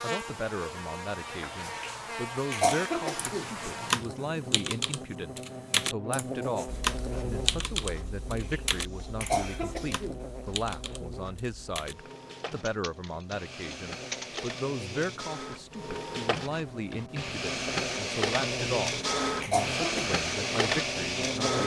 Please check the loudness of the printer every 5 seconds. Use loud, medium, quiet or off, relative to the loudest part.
off, quiet, quiet, loud, loud.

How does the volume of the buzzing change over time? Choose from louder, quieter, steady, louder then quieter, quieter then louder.
quieter then louder.